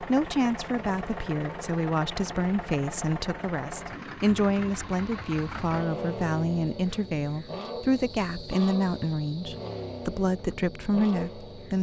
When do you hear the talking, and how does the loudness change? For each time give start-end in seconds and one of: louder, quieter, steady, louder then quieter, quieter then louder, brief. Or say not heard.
0.0-11.7 steady.